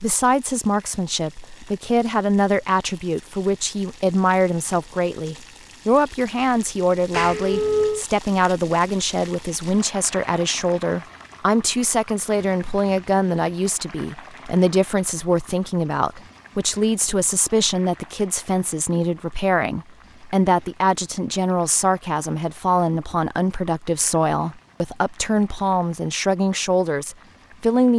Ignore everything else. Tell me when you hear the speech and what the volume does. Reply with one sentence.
The speech can be heard from 0.0 to 27.9 s, at a steady volume.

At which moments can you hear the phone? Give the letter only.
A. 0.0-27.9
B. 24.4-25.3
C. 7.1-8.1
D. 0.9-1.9
C.